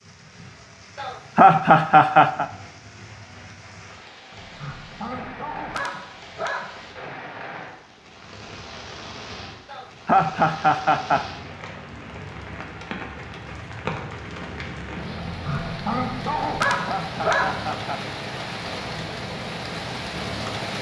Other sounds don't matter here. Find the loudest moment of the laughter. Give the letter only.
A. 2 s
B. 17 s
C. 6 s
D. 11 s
A.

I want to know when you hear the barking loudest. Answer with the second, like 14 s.
17 s.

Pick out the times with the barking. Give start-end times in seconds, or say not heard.
4.3-7.2, 15.2-17.4.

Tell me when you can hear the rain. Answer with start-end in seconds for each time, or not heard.
0.0-20.7.